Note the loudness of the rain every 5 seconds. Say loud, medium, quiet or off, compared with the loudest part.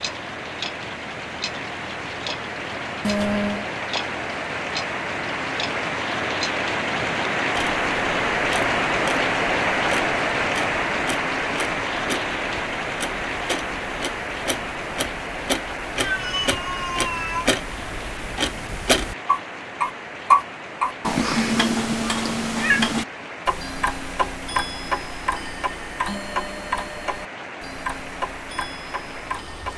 medium, loud, loud, medium, quiet, quiet.